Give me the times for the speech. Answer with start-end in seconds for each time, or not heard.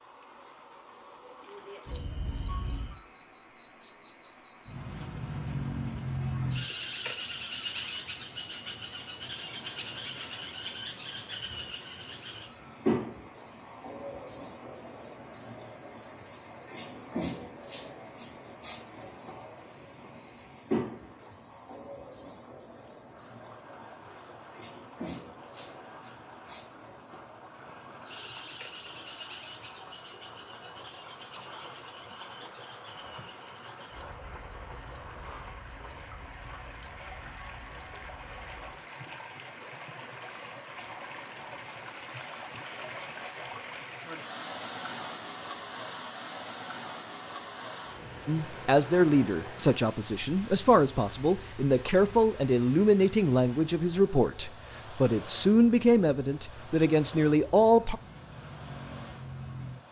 48.2-58.0.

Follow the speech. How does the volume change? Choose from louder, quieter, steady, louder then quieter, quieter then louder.
steady.